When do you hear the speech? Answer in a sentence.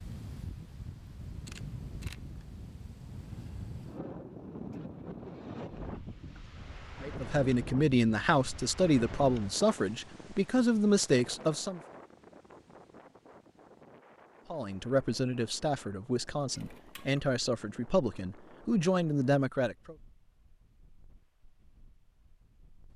The speech can be heard from 7.0 to 11.8 s and from 14.5 to 19.9 s.